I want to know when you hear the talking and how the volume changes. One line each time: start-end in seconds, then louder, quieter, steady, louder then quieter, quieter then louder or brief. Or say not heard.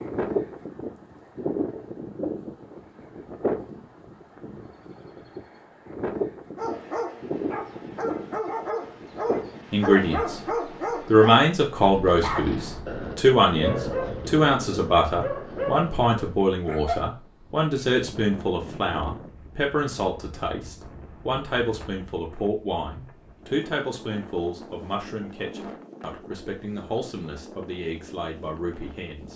9.7-10.4 brief
11.1-29.3 quieter.